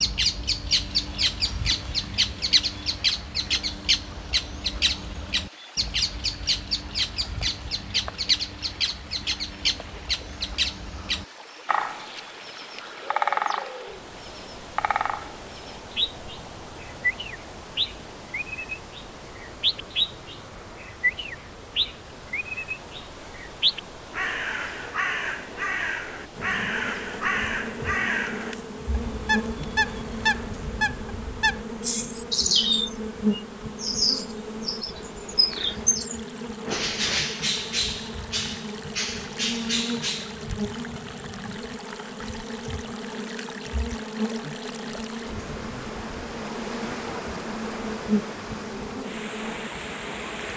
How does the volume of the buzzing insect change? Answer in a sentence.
The volume of the buzzing insect stays about the same.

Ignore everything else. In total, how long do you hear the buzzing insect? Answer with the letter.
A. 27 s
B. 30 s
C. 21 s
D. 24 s
D.